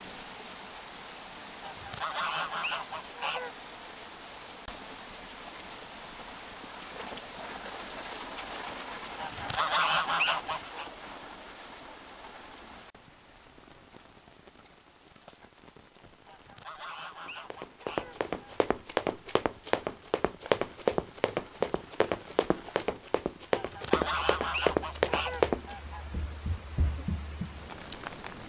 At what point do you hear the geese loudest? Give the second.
10 s.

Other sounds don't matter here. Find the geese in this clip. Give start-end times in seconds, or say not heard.
1.6-3.5, 9.2-10.8, 16.2-18.5, 23.5-26.1.